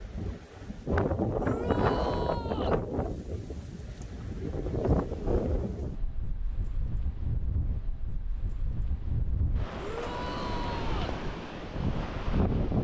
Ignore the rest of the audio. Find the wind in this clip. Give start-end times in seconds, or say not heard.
0.0-12.8.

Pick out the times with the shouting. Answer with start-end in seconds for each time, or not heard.
1.4-2.8, 9.8-11.2.